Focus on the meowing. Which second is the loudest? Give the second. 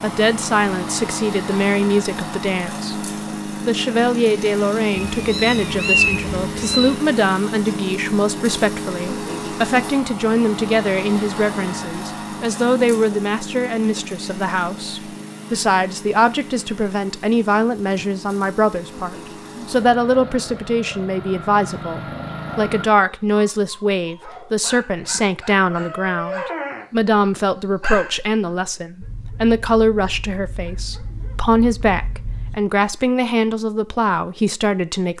6 s.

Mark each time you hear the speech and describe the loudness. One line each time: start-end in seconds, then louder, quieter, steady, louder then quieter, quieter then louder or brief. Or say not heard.
0.0-3.0 brief
3.6-35.1 steady.